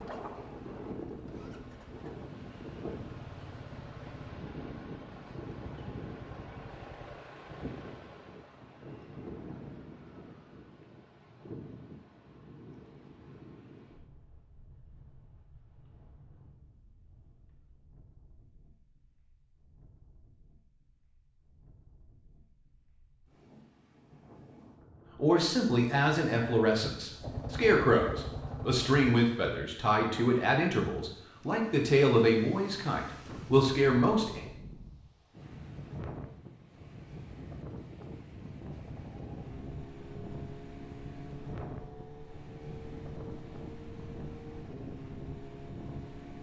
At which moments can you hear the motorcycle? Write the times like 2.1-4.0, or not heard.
0.0-7.2, 27.2-28.9, 38.7-46.3.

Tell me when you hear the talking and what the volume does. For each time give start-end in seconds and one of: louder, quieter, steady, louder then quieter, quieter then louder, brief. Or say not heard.
25.1-34.4 steady.